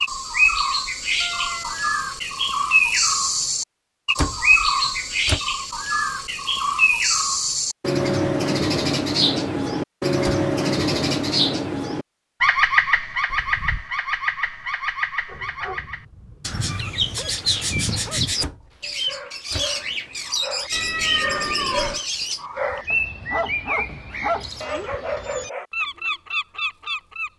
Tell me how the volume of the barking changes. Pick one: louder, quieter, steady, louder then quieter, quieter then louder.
louder.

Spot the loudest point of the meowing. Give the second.
21 s.